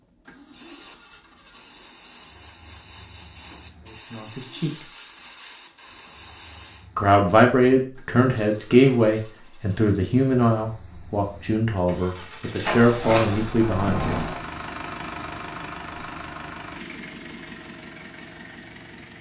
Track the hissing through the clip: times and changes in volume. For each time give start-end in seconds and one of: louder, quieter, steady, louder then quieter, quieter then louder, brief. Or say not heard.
0.3-6.9 steady.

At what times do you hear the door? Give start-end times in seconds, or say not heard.
12.6-14.4.